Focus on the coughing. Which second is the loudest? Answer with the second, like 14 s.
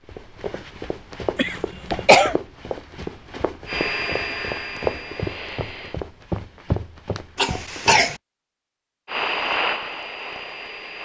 2 s.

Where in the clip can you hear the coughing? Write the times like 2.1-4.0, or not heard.
1.4-2.4, 7.3-8.2.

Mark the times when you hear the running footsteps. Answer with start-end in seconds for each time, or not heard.
0.1-8.0.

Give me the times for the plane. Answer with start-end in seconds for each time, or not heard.
3.6-6.0, 9.1-10.9.